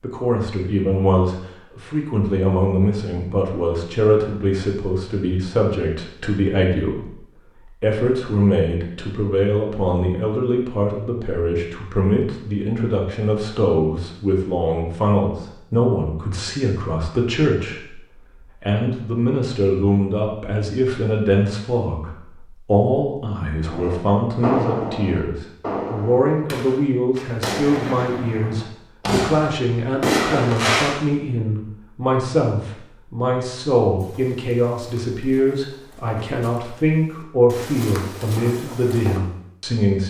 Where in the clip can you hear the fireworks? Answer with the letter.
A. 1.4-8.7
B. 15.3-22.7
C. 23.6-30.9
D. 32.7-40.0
C.